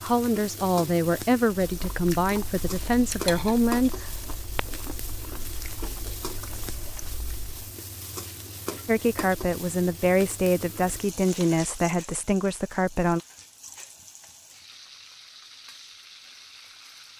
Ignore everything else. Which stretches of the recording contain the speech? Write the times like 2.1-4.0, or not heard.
0.0-4.0, 8.8-13.2.